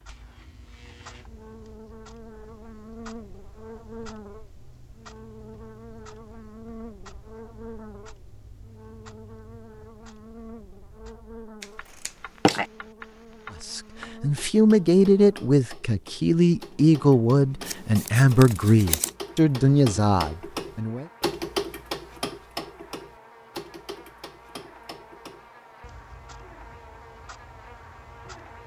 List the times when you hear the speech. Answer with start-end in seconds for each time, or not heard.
13.6-21.1.